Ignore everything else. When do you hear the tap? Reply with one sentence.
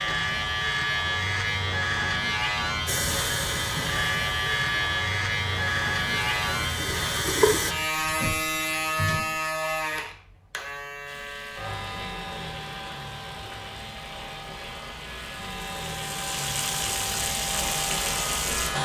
The tap can be heard from 2.9 to 7.8 s and from 11.1 to 18.8 s.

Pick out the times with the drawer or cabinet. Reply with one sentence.
The drawer or cabinet can be heard from 8.0 to 9.3 s.